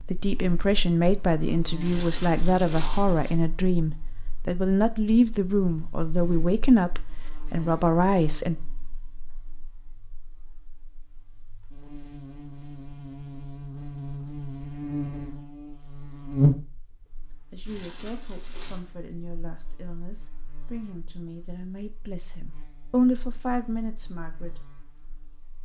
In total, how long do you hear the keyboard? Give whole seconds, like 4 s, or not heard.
not heard.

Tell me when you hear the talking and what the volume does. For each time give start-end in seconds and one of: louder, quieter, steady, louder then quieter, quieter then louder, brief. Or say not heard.
0.0-8.6 steady
17.5-24.8 louder.